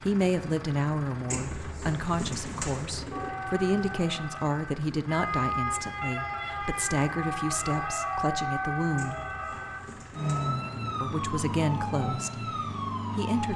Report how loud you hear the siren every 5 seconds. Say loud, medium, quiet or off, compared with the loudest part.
medium, loud, loud.